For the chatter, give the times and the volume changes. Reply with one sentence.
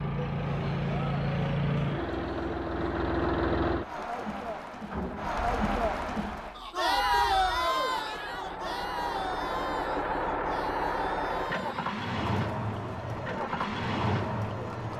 You can hear the chatter from 0.2 to 14.9 s, getting louder then quieter.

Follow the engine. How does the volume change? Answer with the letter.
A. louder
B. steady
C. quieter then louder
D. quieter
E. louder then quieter
C.